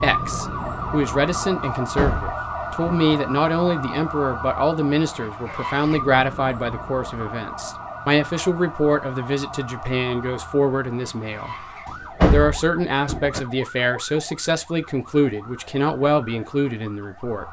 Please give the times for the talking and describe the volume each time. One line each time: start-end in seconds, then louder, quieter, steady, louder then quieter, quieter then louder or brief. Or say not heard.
0.0-17.4 steady.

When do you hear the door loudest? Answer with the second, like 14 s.
12 s.